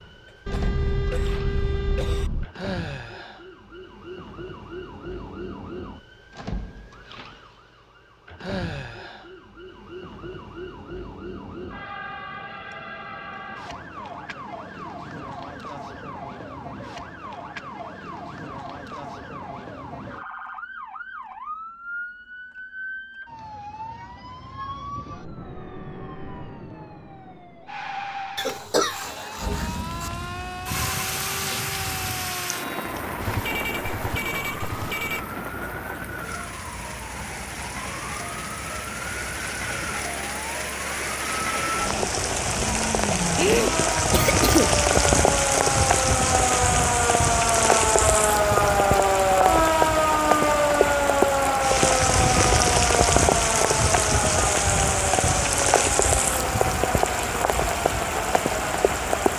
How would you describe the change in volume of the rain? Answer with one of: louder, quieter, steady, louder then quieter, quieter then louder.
louder.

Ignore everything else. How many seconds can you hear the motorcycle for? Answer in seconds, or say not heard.
not heard.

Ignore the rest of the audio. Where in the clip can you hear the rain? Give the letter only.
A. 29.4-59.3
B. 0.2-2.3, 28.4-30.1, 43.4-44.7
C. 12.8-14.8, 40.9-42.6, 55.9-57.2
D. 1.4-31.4
A.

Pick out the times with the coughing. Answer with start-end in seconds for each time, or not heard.
0.2-2.3, 28.4-30.1, 43.4-44.7.